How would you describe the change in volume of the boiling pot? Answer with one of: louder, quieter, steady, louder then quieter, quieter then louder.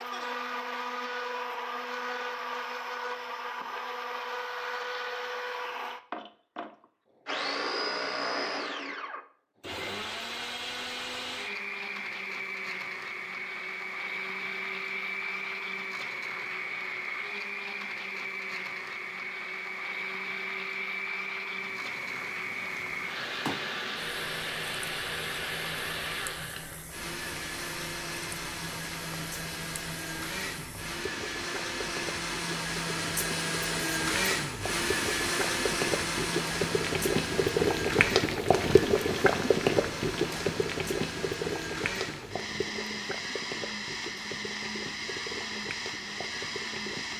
louder then quieter.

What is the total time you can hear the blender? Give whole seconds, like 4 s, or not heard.
47 s.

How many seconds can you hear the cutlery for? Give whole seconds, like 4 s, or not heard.
not heard.